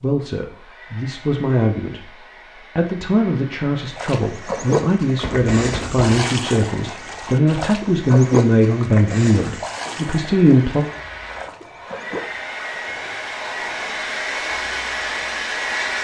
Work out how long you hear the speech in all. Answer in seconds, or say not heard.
10 s.